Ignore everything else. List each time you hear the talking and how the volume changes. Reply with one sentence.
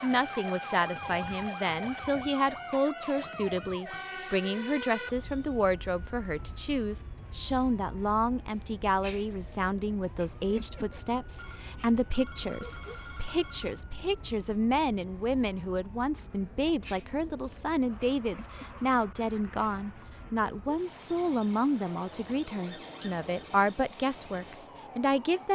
The talking can be heard from 0.0 to 25.5 s, at a steady volume.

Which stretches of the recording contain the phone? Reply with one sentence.
The phone can be heard from 11.3 to 13.8 s.